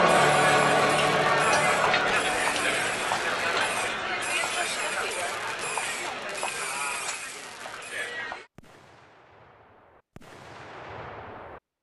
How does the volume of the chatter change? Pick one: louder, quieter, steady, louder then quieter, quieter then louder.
quieter.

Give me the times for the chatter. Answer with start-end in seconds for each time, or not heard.
0.0-8.5.